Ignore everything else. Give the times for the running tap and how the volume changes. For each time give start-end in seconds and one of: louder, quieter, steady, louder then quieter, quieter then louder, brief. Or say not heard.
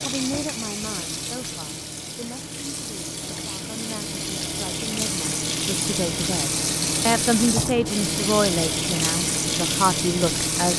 0.0-10.7 louder.